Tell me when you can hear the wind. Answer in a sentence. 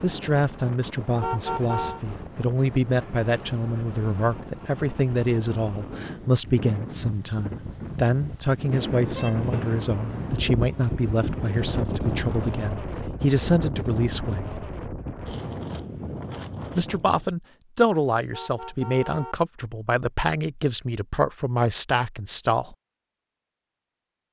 The wind can be heard from 0.0 to 17.3 s.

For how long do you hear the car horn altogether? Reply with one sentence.
The car horn can be heard for 4 seconds in total.